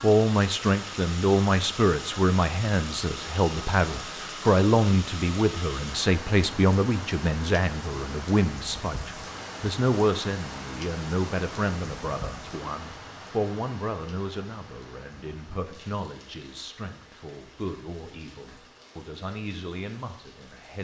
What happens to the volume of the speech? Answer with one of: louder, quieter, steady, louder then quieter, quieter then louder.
quieter.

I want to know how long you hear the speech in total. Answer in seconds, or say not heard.
21 s.